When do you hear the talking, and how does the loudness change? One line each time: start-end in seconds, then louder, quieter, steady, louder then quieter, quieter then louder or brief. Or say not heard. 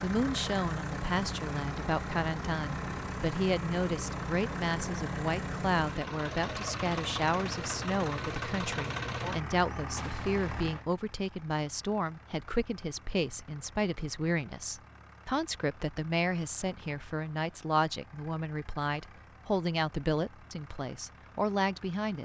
0.0-22.1 steady.